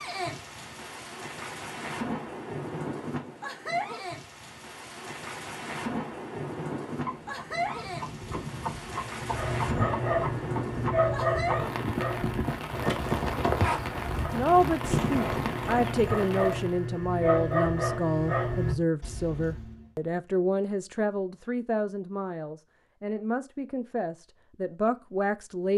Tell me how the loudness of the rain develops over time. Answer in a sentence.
The volume of the rain stays about the same.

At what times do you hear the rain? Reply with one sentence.
You can hear the rain from 0.0 to 16.9 s.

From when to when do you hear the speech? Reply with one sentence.
The speech can be heard from 14.3 to 25.7 s.